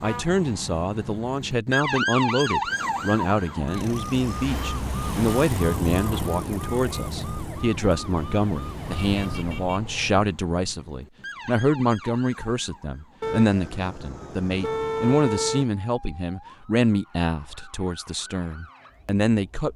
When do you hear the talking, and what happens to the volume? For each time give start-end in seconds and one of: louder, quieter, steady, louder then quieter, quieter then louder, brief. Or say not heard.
0.0-19.7 steady.